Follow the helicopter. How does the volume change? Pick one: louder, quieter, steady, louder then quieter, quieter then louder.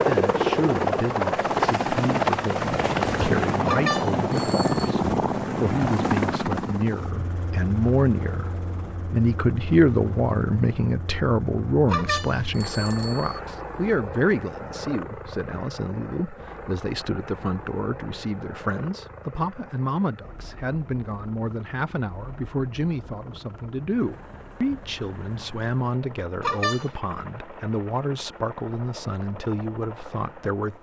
quieter.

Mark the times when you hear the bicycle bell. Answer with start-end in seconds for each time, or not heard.
3.6-4.9, 11.9-13.4, 26.4-26.9.